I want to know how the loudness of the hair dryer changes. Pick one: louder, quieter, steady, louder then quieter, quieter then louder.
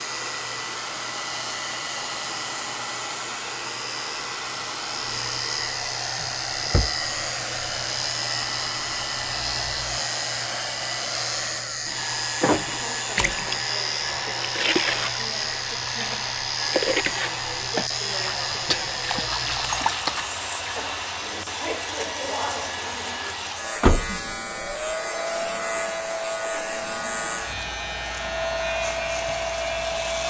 steady.